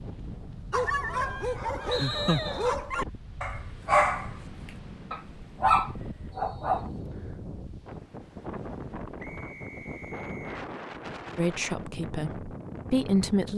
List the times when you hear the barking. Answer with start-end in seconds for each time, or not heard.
0.7-4.3, 5.1-7.0.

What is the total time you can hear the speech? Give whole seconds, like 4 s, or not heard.
2 s.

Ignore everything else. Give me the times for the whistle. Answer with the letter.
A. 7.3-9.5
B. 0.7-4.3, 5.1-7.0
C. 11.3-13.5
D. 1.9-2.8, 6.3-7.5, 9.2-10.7
D.